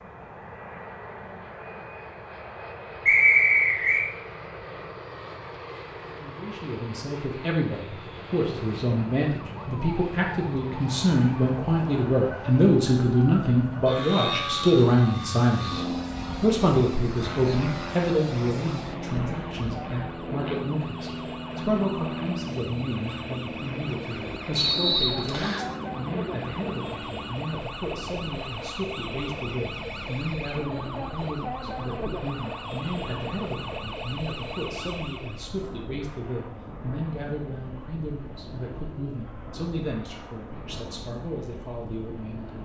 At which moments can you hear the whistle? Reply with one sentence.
The whistle can be heard from 3.0 to 4.0 s and from 24.6 to 25.6 s.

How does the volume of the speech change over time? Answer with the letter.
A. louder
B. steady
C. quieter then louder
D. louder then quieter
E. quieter
E.